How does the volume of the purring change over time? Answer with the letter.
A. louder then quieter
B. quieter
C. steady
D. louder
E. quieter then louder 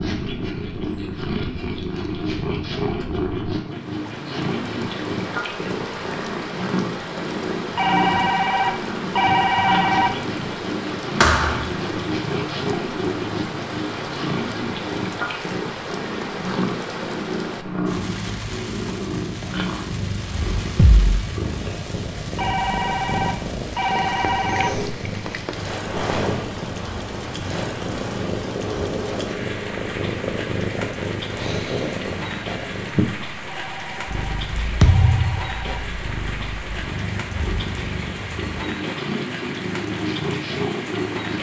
C.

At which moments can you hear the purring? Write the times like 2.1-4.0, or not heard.
0.0-41.3.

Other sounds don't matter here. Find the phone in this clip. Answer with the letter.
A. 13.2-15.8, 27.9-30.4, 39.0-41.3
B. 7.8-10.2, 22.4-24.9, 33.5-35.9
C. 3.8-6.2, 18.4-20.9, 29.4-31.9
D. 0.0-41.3
B.